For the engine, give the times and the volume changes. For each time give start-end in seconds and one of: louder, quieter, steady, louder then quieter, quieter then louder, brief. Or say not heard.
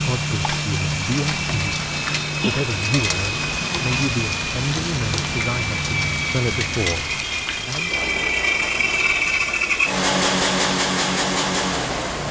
0.0-12.2 louder.